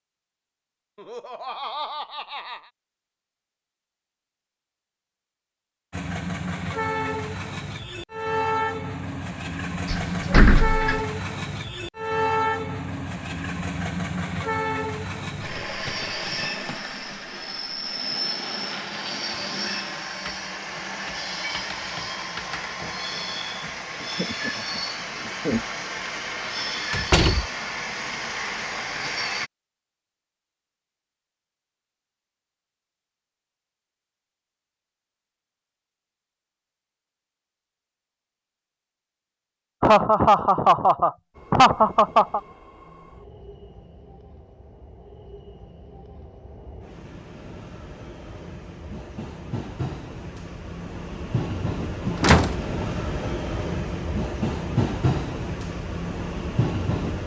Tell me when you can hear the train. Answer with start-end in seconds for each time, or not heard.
5.9-29.5, 41.3-57.2.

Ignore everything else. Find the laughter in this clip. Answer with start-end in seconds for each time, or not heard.
0.9-2.7, 24.0-25.6, 39.8-42.4.